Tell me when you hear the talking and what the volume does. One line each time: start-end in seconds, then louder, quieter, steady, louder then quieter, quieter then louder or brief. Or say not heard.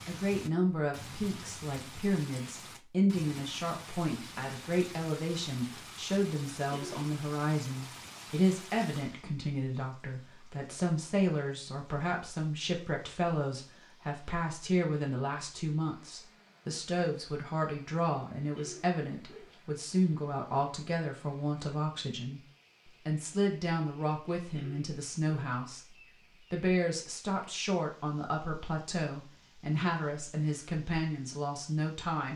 0.1-32.3 steady.